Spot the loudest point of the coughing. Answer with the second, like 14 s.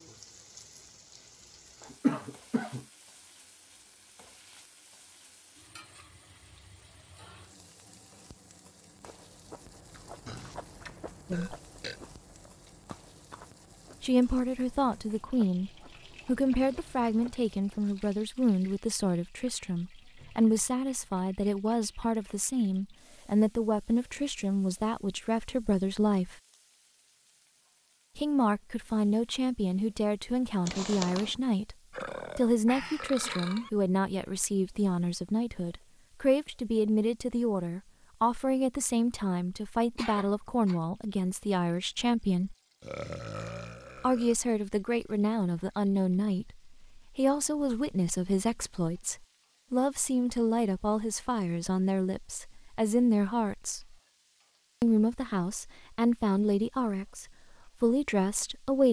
2 s.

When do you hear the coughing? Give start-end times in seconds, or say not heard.
1.9-2.9, 30.6-31.4, 40.0-40.8.